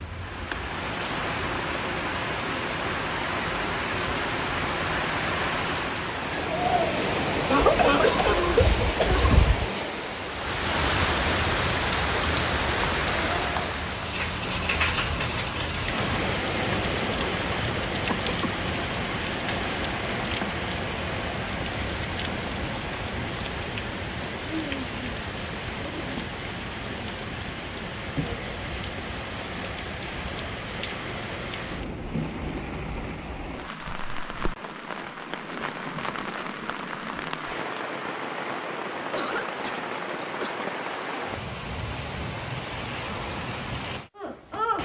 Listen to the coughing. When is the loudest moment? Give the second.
8 s.